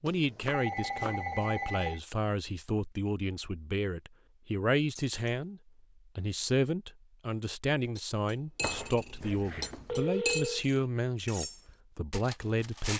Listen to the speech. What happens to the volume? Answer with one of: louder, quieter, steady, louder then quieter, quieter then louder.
steady.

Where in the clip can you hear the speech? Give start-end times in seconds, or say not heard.
0.0-12.9.